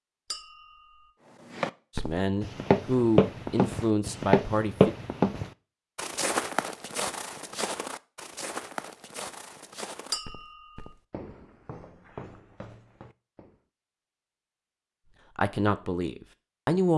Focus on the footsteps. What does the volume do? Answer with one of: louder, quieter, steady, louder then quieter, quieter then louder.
quieter.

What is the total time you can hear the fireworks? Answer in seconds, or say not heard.
not heard.